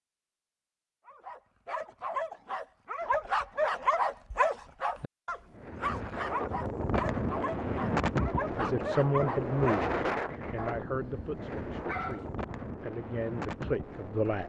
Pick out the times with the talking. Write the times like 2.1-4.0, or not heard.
8.6-14.4.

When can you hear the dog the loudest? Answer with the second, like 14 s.
4 s.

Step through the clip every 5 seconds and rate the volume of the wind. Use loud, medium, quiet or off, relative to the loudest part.
off, loud, medium.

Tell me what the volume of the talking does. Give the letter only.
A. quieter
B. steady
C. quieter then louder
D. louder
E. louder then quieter
C.